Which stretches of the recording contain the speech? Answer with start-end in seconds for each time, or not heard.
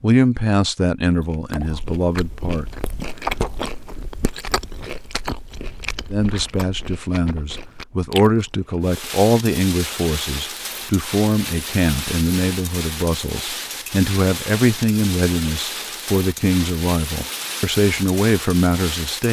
0.0-2.6, 6.1-19.2.